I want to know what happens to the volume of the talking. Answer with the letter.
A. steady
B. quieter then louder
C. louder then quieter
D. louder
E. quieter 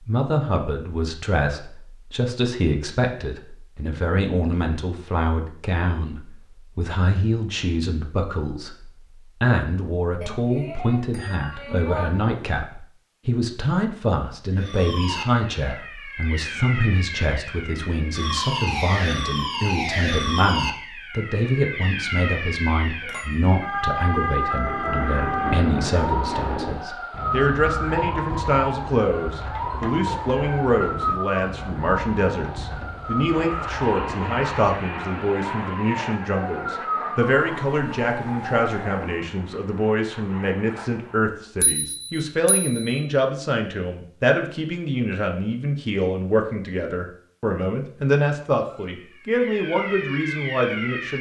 A.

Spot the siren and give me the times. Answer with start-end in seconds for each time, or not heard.
14.6-39.3, 48.5-51.1.